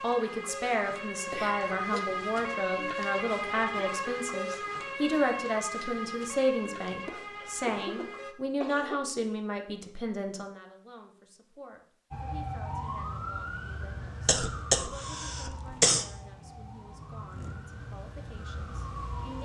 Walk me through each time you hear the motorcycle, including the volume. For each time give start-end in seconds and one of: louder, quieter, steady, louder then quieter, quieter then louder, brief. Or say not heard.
not heard.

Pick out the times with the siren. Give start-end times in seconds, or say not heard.
0.0-8.3, 12.1-19.3.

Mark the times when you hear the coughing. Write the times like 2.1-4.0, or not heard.
1.3-2.0, 7.0-9.0, 14.2-16.1.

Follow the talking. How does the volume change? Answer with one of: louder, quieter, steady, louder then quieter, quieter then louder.
quieter.